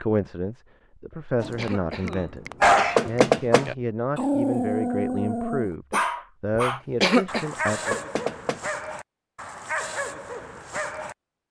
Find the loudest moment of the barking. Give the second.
3 s.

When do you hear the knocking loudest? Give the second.
3 s.